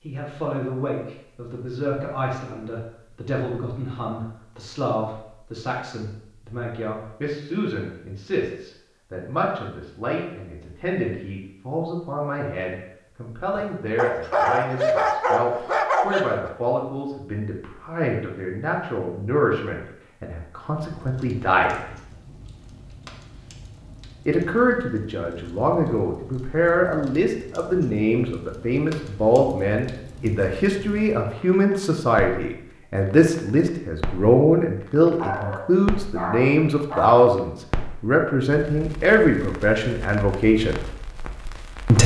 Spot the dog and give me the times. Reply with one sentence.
You can hear the dog from 13.6 to 16.5 s and from 35.1 to 37.2 s.